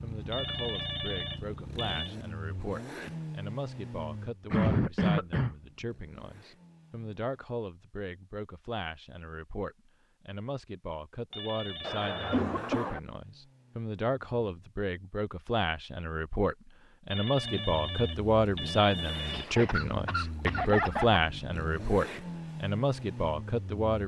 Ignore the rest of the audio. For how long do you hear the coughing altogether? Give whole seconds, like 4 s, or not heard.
4 s.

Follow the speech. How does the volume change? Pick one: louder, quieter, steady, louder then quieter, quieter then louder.
louder.